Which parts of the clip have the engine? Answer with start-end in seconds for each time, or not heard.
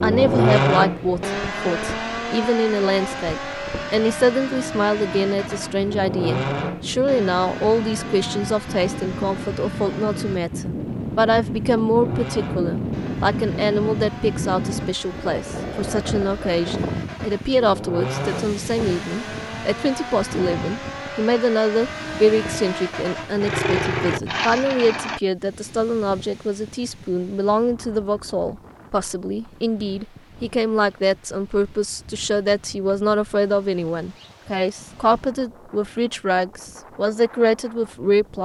0.0-10.4, 11.9-25.2.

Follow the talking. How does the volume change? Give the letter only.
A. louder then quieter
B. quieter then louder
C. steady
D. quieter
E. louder
C.